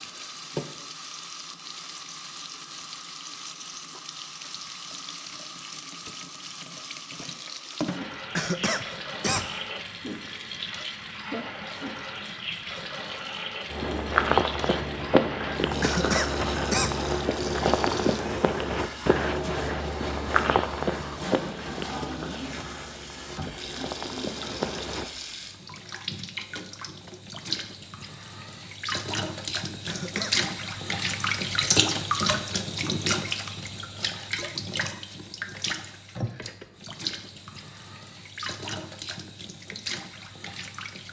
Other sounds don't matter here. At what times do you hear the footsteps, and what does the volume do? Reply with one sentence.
You can hear the footsteps from 13.7 to 25.1 s, getting quieter.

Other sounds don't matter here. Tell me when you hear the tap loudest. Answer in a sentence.
The loudest moment of the tap is at 32 seconds.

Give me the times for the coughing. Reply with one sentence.
You can hear the coughing from 8.3 to 9.6 s, from 15.8 to 16.9 s and from 29.9 to 30.4 s.